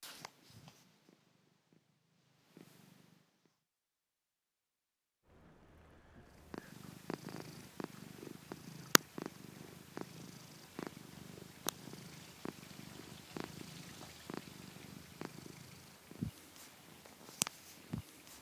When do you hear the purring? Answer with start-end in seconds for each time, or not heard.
0.0-3.5, 6.2-18.3.